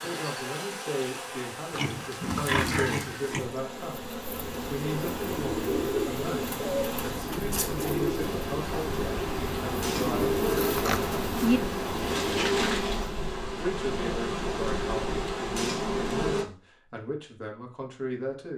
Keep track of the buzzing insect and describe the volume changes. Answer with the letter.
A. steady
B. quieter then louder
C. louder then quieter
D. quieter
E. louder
E.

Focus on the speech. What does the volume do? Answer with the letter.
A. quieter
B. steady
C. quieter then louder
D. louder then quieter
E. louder
B.